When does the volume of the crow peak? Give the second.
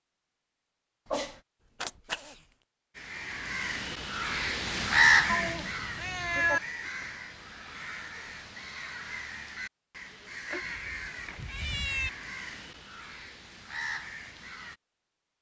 5 s.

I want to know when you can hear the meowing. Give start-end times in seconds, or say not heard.
1.1-2.4, 5.2-6.6, 10.5-12.1.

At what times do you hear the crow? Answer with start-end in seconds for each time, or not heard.
3.0-14.8.